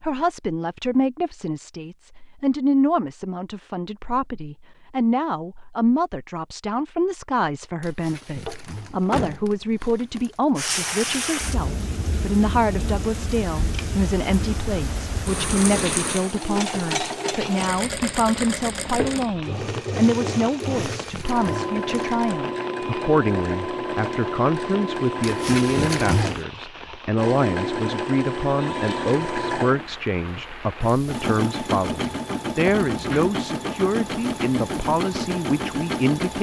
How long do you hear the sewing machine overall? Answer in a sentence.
You can hear the sewing machine for 23 seconds altogether.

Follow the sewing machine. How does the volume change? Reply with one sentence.
The loudness of the sewing machine stays about the same.